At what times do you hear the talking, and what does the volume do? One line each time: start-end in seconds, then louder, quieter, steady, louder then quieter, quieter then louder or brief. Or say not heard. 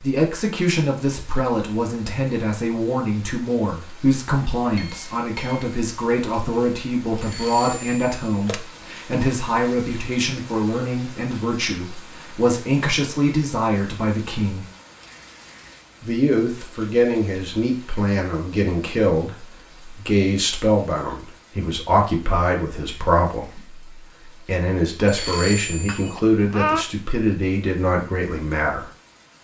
0.0-14.7 steady
16.0-28.9 steady.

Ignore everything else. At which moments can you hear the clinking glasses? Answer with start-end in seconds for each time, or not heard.
4.8-5.8, 25.7-26.9.